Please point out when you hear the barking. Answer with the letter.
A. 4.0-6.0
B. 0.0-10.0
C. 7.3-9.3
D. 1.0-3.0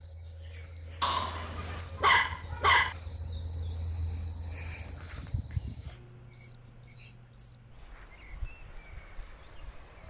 D.